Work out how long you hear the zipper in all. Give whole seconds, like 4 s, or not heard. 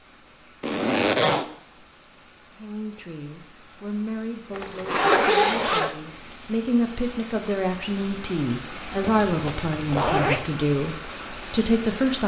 4 s.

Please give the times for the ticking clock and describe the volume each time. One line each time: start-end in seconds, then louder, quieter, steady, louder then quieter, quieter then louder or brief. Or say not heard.
not heard.